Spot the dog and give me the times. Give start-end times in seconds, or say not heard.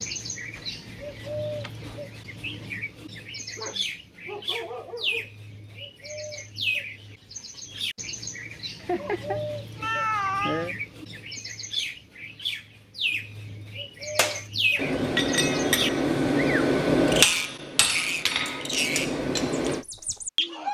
3.5-5.8.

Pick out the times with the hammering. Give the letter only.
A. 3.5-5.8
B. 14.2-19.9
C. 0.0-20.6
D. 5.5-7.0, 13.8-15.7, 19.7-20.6
B.